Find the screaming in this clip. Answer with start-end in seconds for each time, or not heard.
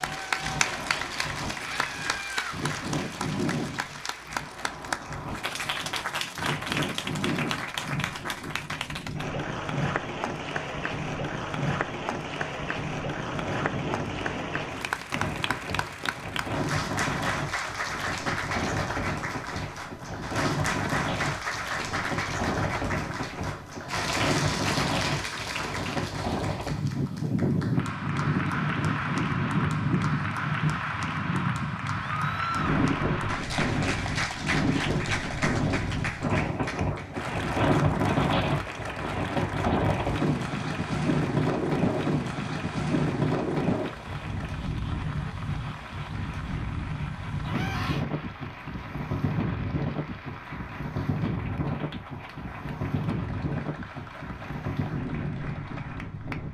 1.7-2.5, 32.0-32.8, 47.5-48.0.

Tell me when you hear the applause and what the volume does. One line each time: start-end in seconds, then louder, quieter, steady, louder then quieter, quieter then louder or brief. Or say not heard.
0.0-56.5 quieter.